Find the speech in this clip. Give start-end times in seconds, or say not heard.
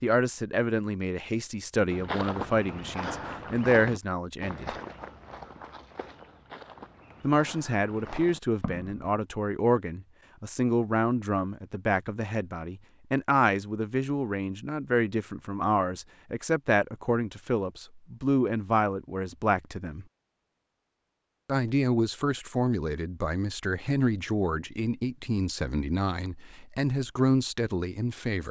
0.0-4.8, 7.2-20.1, 21.4-28.4.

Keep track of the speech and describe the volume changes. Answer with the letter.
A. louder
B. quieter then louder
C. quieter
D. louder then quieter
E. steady
E.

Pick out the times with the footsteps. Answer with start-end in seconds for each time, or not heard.
1.9-9.1.